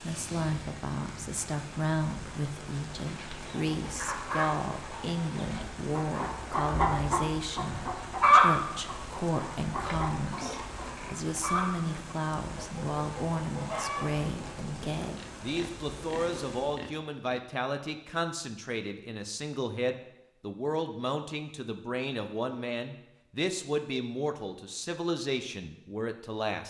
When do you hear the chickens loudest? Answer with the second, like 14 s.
8 s.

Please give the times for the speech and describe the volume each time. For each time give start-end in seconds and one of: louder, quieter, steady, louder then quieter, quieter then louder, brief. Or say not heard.
0.0-26.6 steady.